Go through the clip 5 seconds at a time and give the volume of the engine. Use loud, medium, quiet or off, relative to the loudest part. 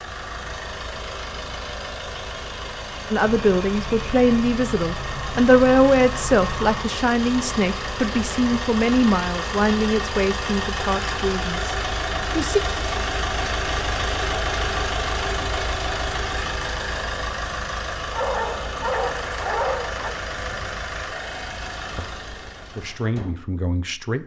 medium, loud, loud, loud, medium.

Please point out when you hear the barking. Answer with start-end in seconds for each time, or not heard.
18.1-20.1.